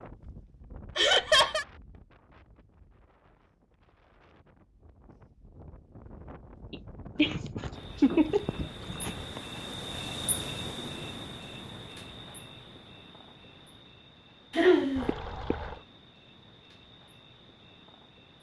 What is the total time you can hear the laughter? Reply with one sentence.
The laughter can be heard for 4 seconds in total.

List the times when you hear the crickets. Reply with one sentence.
The crickets can be heard from 7.7 to 18.3 s.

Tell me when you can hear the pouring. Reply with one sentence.
You can hear the pouring from 14.9 to 15.8 s.